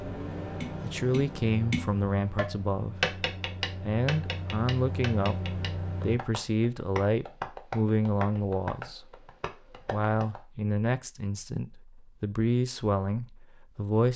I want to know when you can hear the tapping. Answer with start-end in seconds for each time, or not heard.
0.6-10.4.